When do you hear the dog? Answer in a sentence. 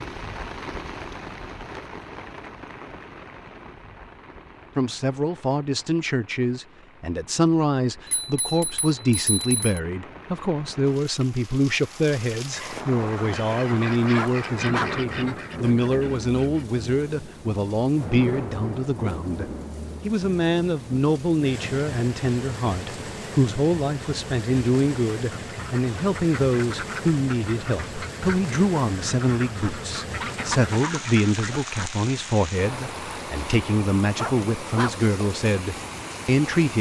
The dog can be heard from 14.2 to 14.9 s and from 34.1 to 35.0 s.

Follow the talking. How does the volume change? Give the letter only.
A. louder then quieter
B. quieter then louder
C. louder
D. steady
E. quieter
D.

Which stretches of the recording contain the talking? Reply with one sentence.
You can hear the talking from 4.8 to 36.7 s.